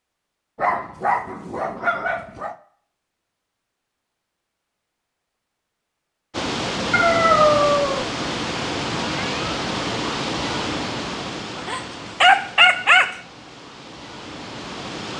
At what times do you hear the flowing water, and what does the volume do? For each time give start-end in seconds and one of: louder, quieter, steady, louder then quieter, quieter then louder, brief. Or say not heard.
6.3-15.1 quieter.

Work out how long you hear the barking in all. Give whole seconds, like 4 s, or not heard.
5 s.